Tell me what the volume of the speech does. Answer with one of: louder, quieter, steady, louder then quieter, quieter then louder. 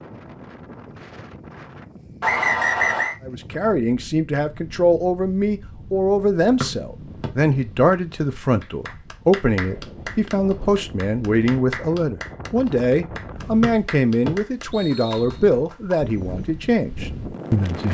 steady.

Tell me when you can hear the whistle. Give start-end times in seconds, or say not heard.
2.2-3.1, 6.6-7.3, 13.6-15.3.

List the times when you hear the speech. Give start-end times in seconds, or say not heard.
3.2-17.9.